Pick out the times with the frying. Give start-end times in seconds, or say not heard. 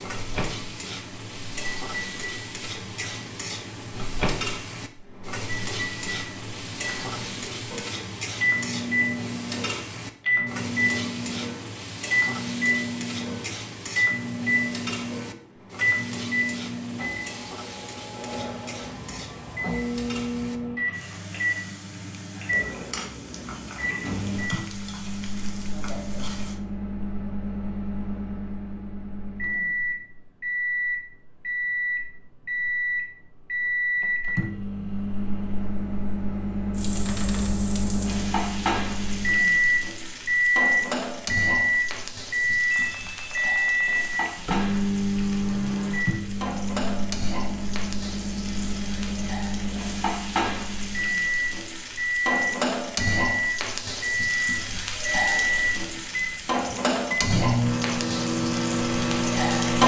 0.0-26.6, 36.8-59.8.